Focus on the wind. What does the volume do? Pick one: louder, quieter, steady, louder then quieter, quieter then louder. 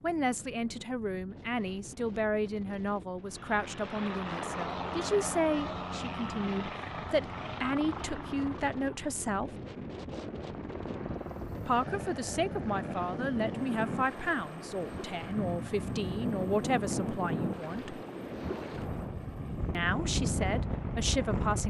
louder.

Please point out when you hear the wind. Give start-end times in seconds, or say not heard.
0.0-21.6.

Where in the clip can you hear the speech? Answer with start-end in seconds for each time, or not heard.
0.0-9.6, 11.7-18.0, 19.7-21.6.